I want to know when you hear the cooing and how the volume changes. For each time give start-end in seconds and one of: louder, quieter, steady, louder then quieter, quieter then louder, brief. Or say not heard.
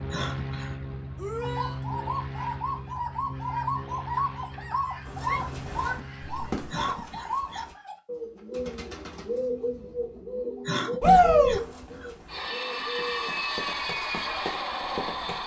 1.4-13.4 steady.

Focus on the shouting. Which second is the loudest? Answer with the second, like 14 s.
11 s.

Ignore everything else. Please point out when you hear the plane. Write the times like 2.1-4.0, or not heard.
0.0-6.8, 12.2-15.4.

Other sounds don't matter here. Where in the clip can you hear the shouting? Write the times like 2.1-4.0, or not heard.
1.1-1.8, 5.2-6.7, 11.0-11.6.